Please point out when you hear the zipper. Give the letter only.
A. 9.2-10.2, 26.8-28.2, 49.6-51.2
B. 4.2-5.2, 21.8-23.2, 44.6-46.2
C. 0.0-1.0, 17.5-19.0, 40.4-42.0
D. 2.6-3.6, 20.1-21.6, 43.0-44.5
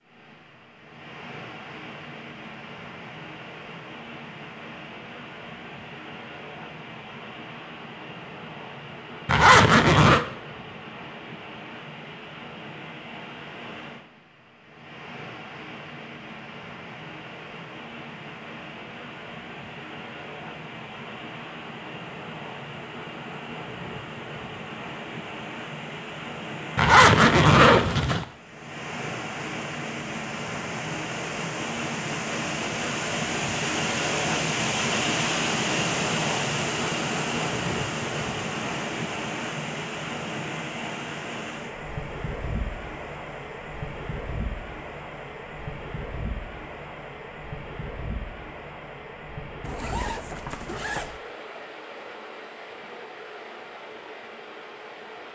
A.